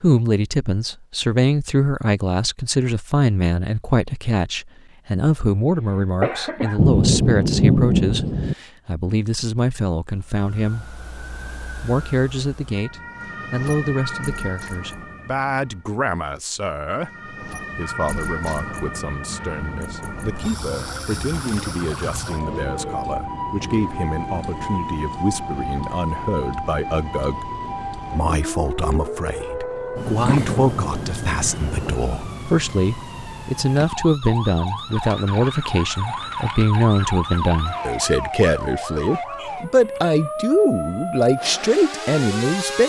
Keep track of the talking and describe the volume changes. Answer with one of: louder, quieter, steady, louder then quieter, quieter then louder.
quieter then louder.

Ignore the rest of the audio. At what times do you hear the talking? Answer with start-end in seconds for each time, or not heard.
0.0-10.9, 11.8-42.8.